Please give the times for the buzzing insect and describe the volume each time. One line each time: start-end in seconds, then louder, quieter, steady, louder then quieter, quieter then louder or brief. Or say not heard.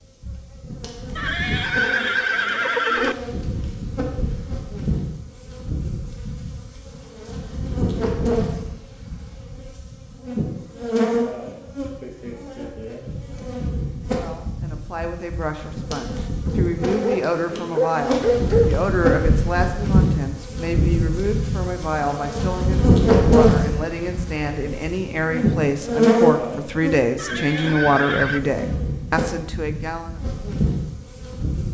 0.2-31.6 louder.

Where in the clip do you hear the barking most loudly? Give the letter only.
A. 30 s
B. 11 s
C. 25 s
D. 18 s
D.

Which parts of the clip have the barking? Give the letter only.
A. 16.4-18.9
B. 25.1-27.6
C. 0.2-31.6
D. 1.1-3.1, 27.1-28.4
A.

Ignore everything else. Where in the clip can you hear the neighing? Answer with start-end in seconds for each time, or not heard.
1.1-3.1, 27.1-28.4.